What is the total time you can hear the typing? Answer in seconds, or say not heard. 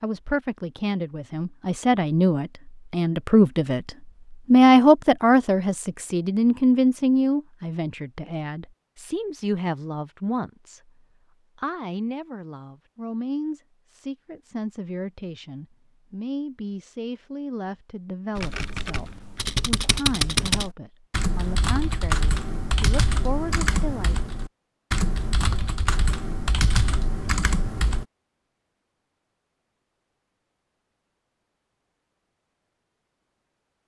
10 s.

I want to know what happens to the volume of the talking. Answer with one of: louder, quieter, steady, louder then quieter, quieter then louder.
quieter.